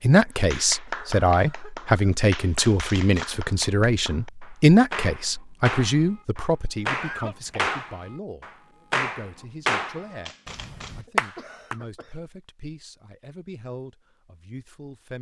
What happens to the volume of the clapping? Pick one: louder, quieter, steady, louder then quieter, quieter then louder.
louder.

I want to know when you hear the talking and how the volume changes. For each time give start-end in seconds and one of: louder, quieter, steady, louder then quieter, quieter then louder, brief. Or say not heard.
0.0-15.1 quieter.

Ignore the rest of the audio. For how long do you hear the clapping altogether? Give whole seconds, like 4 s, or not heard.
11 s.